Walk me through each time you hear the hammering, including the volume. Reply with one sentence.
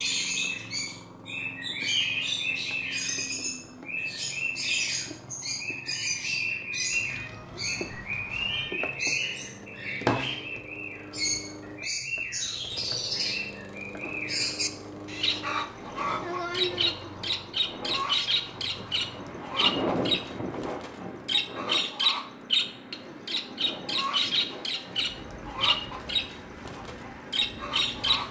The hammering can't be heard in this clip.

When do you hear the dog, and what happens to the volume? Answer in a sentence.
You can't hear the dog here.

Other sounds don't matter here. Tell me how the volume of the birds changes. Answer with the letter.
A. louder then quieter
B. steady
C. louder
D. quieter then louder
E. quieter
B.